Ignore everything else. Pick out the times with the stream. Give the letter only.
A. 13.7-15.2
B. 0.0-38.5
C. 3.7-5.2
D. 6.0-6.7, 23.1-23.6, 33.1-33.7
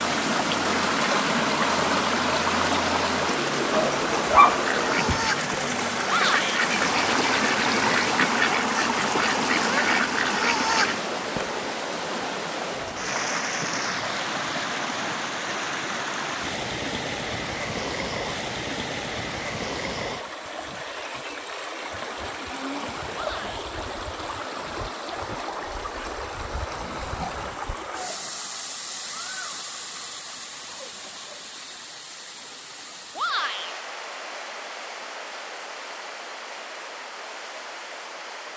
B.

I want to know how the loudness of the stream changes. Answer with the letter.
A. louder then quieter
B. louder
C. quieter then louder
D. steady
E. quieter
E.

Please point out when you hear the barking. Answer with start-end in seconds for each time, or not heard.
3.7-5.2.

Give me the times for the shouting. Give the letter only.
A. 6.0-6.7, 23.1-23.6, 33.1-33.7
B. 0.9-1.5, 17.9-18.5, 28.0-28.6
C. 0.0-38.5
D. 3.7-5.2
A.